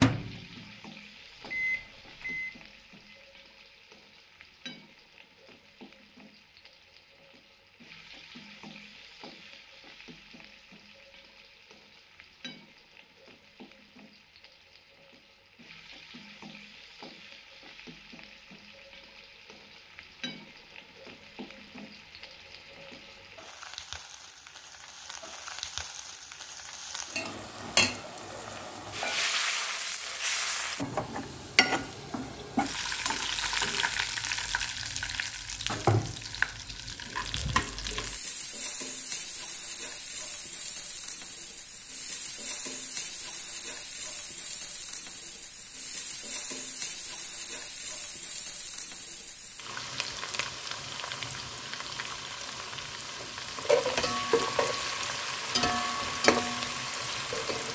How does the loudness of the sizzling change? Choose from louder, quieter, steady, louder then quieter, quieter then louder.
louder.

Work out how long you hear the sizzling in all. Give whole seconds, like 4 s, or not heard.
58 s.